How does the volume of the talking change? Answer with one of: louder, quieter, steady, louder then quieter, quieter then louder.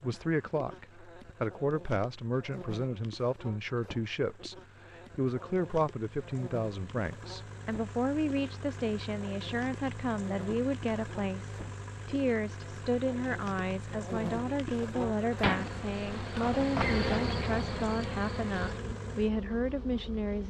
steady.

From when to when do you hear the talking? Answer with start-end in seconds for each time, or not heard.
0.0-20.4.